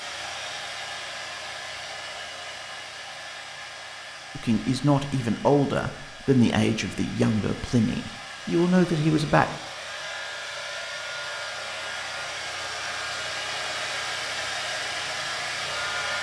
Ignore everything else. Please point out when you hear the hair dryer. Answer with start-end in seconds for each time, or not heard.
0.0-16.1.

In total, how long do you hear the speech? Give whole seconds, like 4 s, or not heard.
5 s.